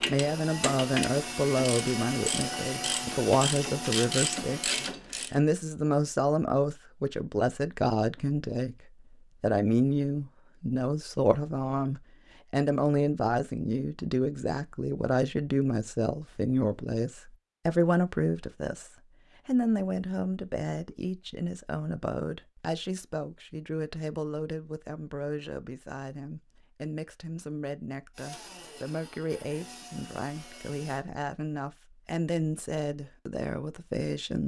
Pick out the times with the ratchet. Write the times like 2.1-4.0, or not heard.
0.0-5.4.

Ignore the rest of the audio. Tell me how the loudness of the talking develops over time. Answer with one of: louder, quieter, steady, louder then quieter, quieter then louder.
quieter.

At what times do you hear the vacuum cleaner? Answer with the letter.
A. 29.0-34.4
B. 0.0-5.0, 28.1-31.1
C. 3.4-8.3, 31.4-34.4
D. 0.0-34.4
B.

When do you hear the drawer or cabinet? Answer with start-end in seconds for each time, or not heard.
not heard.